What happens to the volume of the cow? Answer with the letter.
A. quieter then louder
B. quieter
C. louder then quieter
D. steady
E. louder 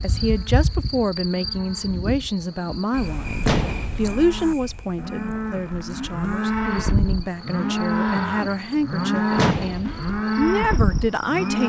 E.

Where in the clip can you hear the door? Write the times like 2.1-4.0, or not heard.
3.5-4.2, 9.3-10.2.